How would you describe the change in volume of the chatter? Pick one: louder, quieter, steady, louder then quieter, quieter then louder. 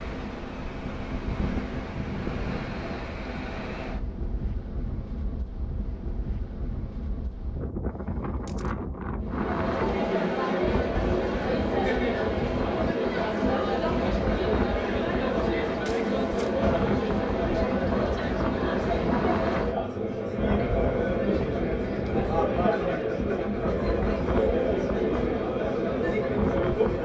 steady.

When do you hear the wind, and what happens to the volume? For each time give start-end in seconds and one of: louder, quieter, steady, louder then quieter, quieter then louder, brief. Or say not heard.
0.0-27.0 steady.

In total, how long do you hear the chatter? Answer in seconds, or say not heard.
18 s.